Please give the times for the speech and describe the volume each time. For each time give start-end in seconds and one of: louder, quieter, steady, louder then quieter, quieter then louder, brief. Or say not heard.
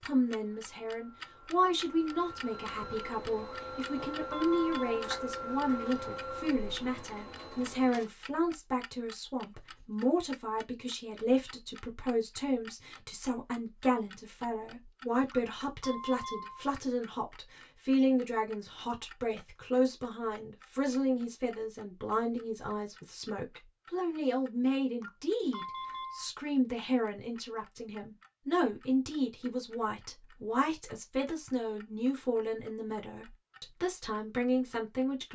0.0-35.2 steady.